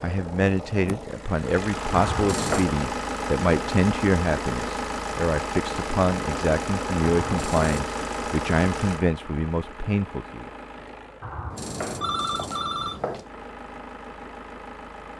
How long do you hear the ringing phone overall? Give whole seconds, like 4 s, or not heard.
4 s.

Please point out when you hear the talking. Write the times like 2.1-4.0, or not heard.
0.0-10.5.